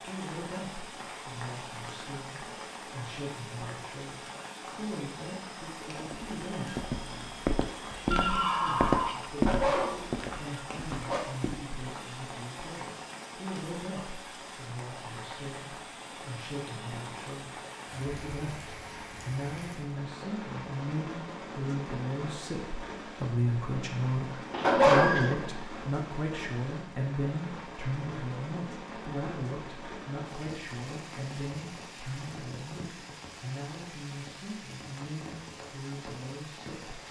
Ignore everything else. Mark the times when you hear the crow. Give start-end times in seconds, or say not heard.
not heard.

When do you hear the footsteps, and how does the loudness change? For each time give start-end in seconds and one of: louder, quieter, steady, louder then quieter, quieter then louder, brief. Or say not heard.
6.0-11.7 louder then quieter.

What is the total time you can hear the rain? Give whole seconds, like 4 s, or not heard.
37 s.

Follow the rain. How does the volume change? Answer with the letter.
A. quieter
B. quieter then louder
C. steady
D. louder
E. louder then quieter
C.